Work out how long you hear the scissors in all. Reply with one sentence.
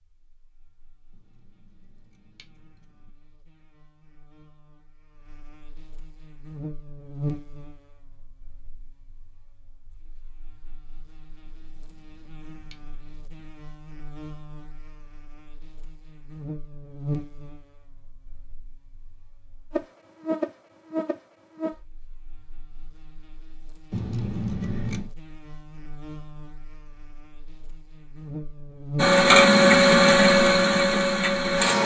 You can hear the scissors for 5 seconds altogether.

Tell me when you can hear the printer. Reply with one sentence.
You can hear the printer from 28.9 to 31.8 s.